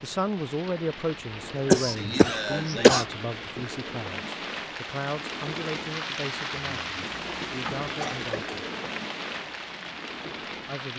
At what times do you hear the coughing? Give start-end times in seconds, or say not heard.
1.6-3.0, 7.4-8.6.